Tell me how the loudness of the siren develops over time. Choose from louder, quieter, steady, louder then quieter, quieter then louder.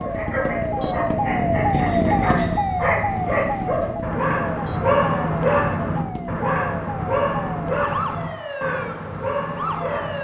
quieter.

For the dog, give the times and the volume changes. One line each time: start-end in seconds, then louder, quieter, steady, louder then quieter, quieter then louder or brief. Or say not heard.
0.0-10.2 louder then quieter.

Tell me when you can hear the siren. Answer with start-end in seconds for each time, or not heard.
0.0-10.2.